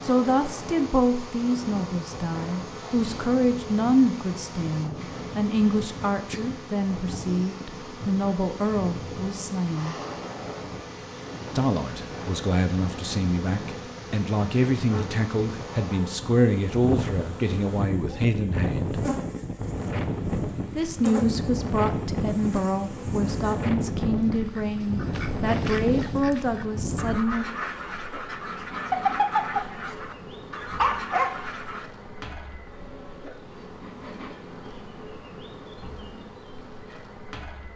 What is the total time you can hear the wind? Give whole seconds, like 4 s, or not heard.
27 s.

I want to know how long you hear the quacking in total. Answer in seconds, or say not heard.
8 s.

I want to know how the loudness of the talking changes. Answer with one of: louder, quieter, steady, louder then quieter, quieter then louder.
steady.